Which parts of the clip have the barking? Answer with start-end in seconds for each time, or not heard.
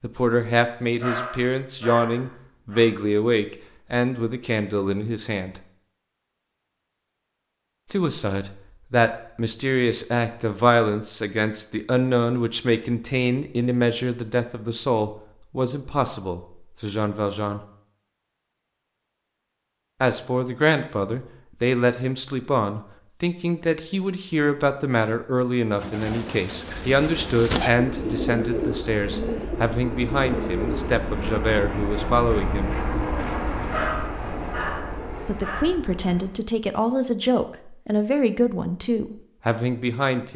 1.0-2.9, 33.7-35.7.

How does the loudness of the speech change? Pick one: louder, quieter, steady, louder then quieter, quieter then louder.
steady.